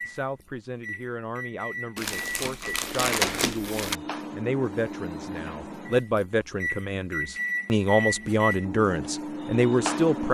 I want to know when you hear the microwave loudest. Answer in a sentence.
The volume of the microwave peaks at 8 seconds.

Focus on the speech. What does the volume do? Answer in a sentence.
The loudness of the speech goes up.